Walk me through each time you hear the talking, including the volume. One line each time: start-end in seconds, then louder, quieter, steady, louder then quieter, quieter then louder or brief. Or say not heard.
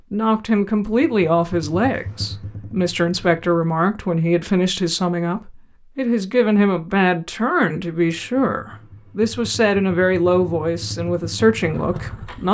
0.1-12.4 steady.